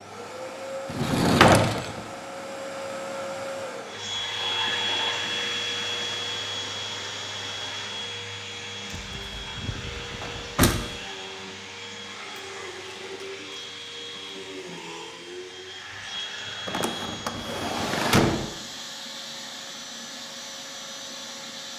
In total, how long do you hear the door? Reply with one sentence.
The door can be heard for 5 seconds in total.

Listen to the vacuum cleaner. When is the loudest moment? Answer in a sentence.
The loudest moment of the vacuum cleaner is at 5 seconds.